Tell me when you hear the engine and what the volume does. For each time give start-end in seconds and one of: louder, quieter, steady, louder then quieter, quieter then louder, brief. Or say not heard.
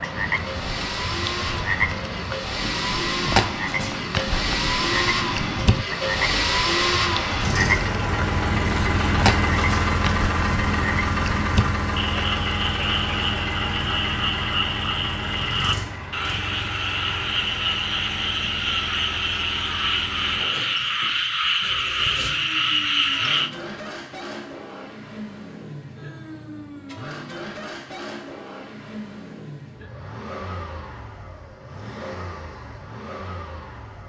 0.0-34.0 quieter.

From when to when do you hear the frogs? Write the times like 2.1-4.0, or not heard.
0.0-23.5.